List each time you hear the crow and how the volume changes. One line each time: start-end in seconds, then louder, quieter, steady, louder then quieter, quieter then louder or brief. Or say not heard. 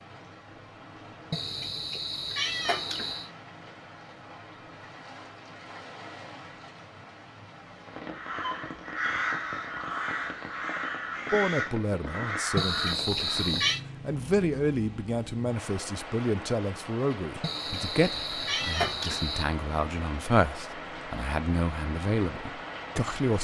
8.0-13.5 steady.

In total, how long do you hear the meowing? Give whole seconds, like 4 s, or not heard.
5 s.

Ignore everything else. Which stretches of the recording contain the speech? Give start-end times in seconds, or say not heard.
11.3-23.3.